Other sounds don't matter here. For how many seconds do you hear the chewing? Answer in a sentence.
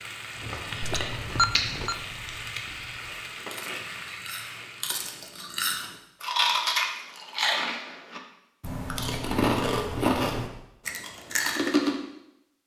The chewing can be heard for 12 seconds in total.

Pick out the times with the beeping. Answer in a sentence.
You can hear the beeping from 0.8 to 1.9 s.